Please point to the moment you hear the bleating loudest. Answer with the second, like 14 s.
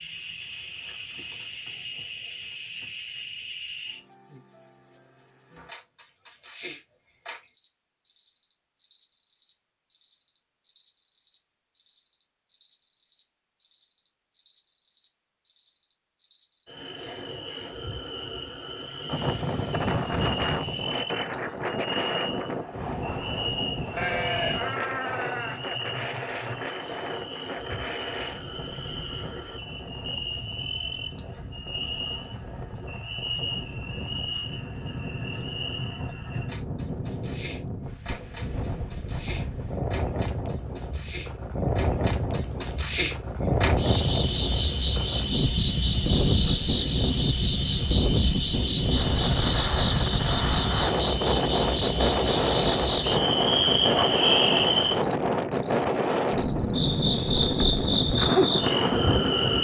24 s.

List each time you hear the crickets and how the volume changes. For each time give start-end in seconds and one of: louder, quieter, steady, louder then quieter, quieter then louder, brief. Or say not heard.
0.0-59.6 louder.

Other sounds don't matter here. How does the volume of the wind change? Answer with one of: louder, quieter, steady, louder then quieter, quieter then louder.
quieter then louder.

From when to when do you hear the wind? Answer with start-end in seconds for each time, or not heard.
19.1-59.6.